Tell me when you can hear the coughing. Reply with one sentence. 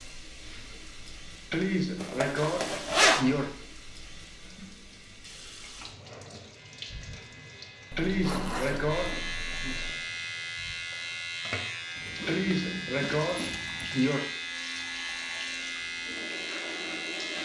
The coughing can be heard from 1.5 to 3.5 s, from 8.0 to 9.8 s and from 12.2 to 14.2 s.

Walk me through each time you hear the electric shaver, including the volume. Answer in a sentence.
The electric shaver can be heard from 6.5 to 17.4 s, getting louder.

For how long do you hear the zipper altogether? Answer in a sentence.
The zipper can be heard for 5 seconds in total.